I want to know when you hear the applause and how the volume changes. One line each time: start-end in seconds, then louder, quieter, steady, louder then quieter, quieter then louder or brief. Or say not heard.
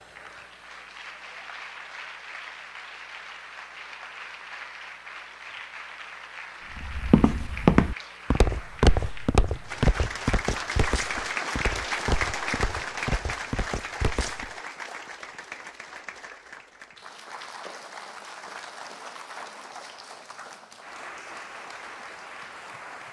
0.0-23.0 louder then quieter.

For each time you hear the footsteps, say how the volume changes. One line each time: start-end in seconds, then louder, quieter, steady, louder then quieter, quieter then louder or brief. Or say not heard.
6.8-14.5 quieter.